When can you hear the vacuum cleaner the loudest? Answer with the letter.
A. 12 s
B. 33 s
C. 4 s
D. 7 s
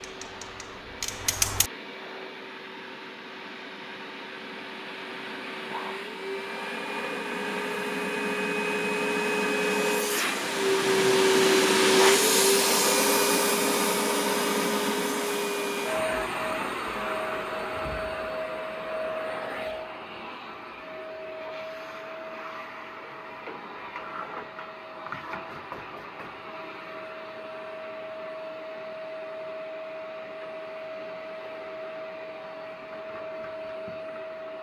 A.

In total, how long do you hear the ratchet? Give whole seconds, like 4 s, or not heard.
2 s.